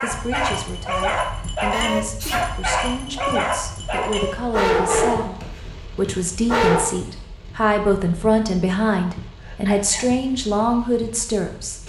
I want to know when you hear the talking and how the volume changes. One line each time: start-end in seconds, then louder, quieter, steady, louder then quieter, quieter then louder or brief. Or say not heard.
0.0-11.8 louder.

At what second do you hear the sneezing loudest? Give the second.
2 s.